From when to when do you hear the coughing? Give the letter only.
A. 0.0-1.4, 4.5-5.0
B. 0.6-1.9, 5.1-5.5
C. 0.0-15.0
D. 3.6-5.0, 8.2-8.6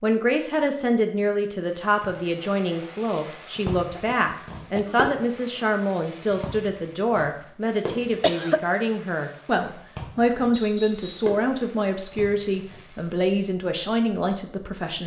D.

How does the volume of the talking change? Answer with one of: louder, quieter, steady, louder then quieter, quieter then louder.
steady.